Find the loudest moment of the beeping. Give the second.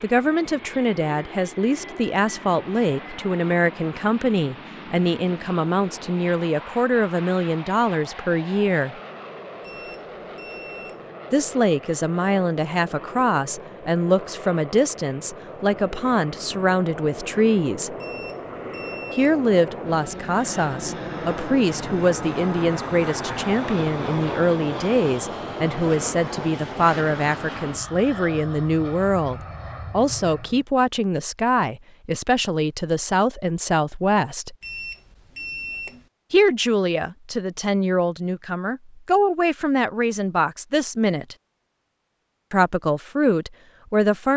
36 s.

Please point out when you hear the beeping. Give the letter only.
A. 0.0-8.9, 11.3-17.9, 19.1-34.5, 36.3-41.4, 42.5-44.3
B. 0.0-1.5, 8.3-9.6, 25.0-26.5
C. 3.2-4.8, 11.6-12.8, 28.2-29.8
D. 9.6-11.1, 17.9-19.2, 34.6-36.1
D.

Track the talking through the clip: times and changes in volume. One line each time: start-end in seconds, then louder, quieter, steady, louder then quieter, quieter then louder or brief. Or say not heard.
0.0-8.9 steady
11.3-17.9 steady
19.1-34.5 steady
36.3-41.4 steady
42.5-44.3 brief.